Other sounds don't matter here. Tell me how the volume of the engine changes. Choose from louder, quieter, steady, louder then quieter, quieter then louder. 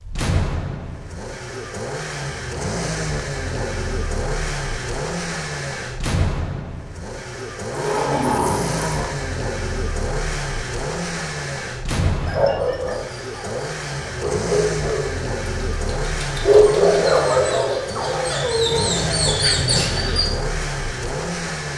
steady.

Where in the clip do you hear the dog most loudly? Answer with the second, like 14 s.
17 s.